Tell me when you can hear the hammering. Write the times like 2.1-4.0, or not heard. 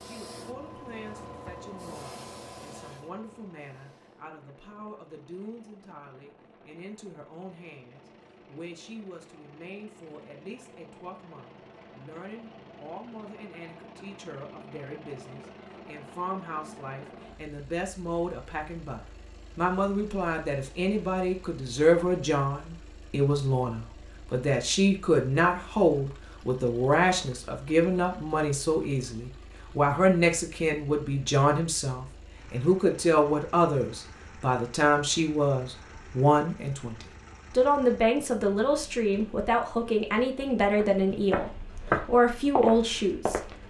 not heard.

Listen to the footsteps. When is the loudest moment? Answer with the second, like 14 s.
42 s.